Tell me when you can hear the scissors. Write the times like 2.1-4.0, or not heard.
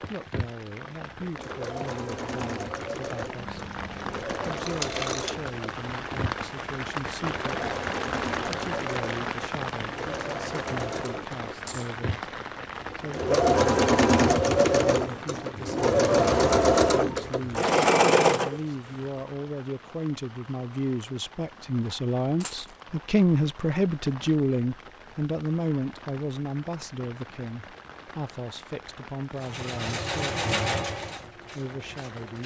3.4-4.3.